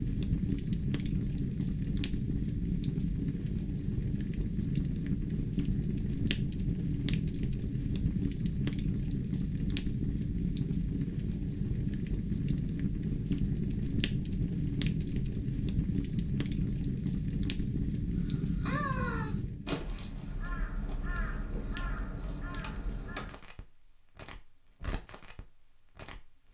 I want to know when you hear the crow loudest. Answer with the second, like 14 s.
19 s.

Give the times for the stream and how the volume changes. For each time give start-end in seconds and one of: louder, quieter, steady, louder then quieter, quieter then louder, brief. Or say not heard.
not heard.